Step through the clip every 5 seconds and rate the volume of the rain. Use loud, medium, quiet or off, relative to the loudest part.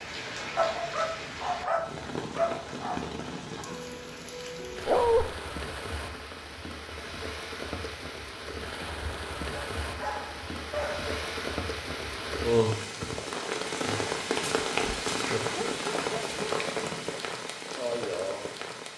medium, medium, loud, loud.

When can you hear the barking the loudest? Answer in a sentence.
The loudest moment of the barking is at 5 seconds.